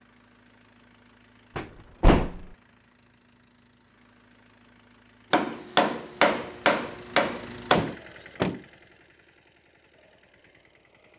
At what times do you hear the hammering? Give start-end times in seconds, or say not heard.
5.3-8.0.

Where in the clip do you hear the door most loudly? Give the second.
2 s.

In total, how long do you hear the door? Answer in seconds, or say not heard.
2 s.